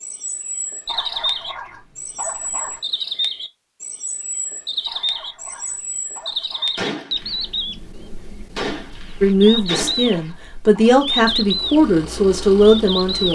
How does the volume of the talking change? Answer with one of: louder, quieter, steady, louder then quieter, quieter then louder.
louder.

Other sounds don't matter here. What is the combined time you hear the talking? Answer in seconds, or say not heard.
4 s.